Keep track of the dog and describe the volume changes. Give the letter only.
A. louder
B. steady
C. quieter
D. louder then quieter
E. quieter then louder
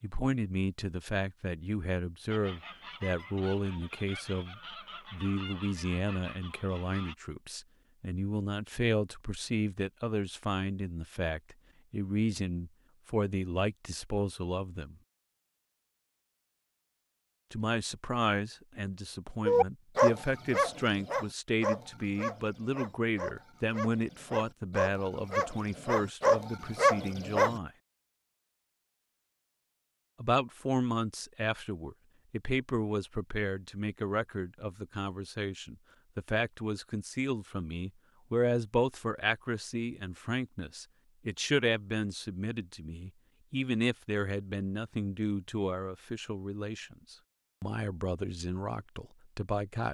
E.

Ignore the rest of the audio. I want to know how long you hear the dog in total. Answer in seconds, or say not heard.
8 s.